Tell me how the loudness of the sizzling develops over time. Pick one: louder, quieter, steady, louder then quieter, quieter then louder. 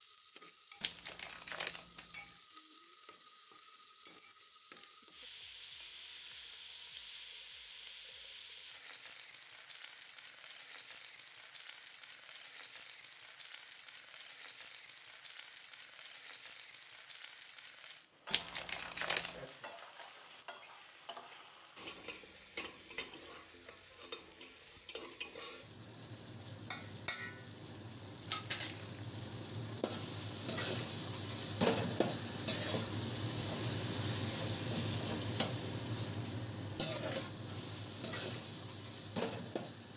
louder.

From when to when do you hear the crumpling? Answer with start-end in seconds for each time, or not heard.
0.8-2.2, 18.3-19.4, 28.2-29.1.